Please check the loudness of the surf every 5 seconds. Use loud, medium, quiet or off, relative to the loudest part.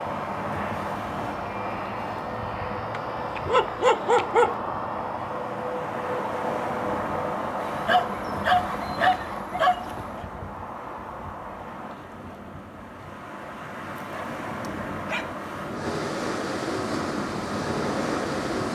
medium, medium, medium, loud.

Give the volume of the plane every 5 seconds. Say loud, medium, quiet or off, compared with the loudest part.
loud, loud, medium, loud.